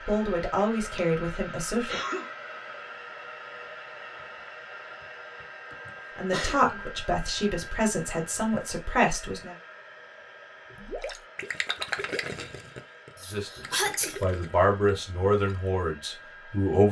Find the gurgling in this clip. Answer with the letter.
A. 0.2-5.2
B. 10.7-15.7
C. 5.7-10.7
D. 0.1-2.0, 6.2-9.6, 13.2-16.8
B.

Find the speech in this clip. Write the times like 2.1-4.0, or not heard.
0.1-2.0, 6.2-9.6, 13.2-16.8.